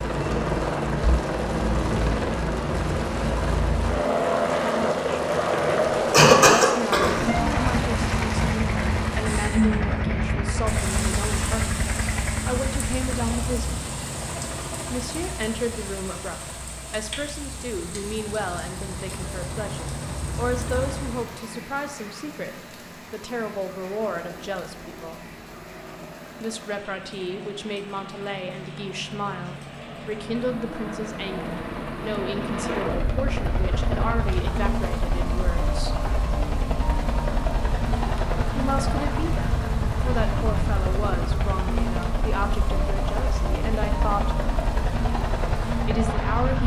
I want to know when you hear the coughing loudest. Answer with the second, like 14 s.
6 s.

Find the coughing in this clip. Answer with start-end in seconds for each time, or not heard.
5.8-7.8.